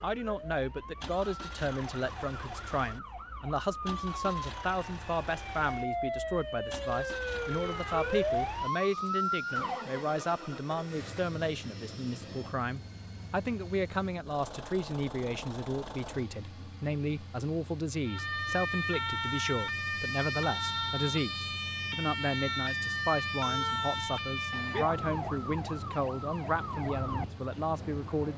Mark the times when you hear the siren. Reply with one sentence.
The siren can be heard from 0.0 to 9.8 s and from 18.1 to 28.3 s.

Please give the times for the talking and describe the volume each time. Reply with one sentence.
The talking can be heard from 0.0 to 28.3 s, at a steady volume.